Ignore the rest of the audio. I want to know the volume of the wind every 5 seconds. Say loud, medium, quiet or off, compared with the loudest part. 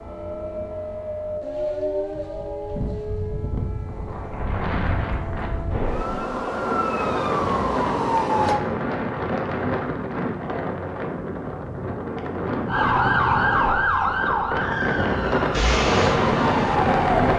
medium, medium, medium, loud.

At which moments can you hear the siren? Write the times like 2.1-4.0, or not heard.
0.0-8.6, 12.7-17.3.